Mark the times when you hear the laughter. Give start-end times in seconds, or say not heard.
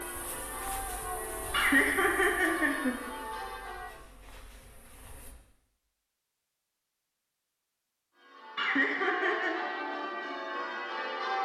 1.5-3.0, 8.6-9.6.